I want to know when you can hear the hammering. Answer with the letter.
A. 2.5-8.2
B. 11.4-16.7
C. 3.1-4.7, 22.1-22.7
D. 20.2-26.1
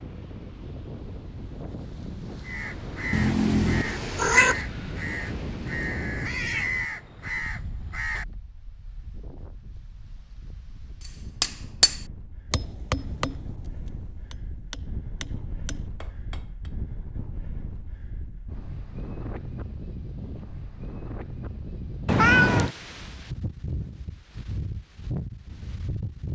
B.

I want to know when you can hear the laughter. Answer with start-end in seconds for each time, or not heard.
not heard.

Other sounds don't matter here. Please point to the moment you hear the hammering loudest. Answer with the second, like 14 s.
12 s.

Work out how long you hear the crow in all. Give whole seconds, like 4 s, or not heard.
6 s.